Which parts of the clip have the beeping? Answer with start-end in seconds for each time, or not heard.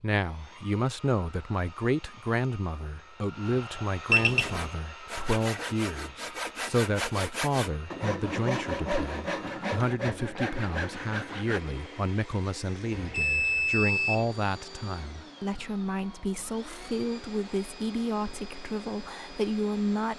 4.1-4.6, 13.1-14.2.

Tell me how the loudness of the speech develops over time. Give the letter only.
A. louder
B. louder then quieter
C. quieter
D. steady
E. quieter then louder
D.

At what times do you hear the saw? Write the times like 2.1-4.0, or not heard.
4.3-11.6.